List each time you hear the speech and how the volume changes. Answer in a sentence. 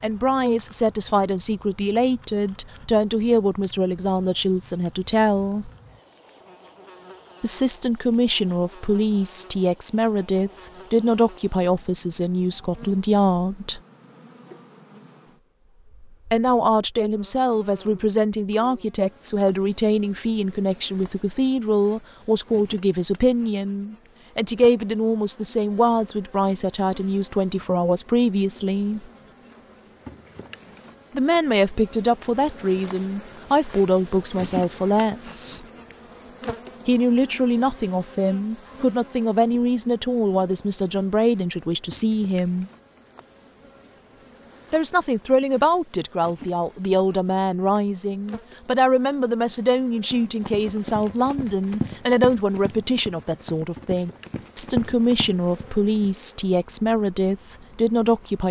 The speech can be heard from 0.0 to 5.7 s, at a steady volume; from 7.4 to 13.8 s, at a steady volume; from 16.3 to 29.1 s, at a steady volume; from 31.1 to 35.6 s, at a steady volume; from 36.9 to 42.7 s, at a steady volume; and from 44.7 to 58.4 s, at a steady volume.